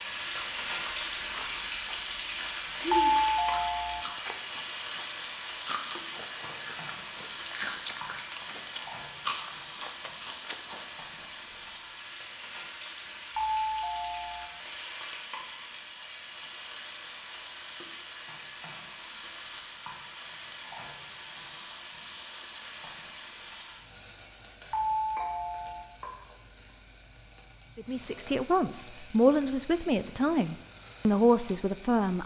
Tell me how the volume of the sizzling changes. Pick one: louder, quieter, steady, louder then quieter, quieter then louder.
quieter.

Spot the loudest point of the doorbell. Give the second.
3 s.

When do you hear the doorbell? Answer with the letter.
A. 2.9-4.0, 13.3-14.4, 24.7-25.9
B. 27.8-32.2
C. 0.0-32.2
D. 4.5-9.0
A.